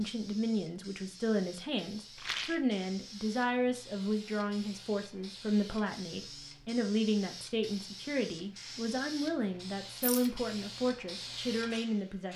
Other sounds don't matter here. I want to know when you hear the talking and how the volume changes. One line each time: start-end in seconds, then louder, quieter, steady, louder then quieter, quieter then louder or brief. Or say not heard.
0.0-12.3 steady.